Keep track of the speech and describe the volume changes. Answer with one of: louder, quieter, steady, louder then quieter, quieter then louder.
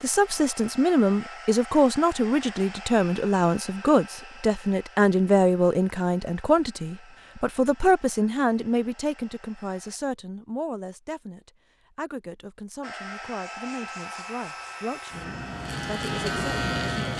quieter.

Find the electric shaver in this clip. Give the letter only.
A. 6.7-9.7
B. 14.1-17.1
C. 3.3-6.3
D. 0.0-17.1
B.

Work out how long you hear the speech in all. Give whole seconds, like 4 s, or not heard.
17 s.